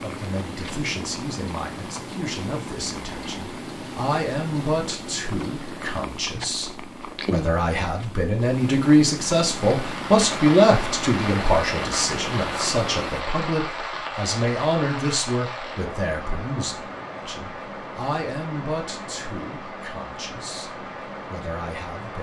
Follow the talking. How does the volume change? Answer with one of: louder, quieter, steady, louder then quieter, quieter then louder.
louder then quieter.